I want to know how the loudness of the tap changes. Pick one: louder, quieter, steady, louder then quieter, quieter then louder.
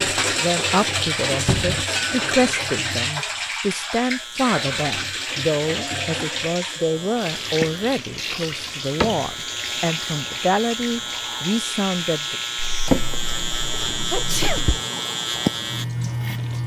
quieter.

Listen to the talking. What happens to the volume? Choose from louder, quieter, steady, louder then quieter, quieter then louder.
steady.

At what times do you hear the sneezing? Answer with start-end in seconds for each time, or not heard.
0.7-1.1, 14.1-14.7.